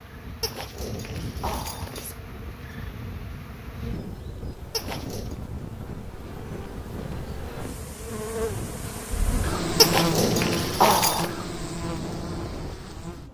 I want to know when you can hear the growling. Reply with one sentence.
You can hear the growling from 0.4 to 2.1 s, from 4.7 to 5.3 s and from 9.8 to 11.3 s.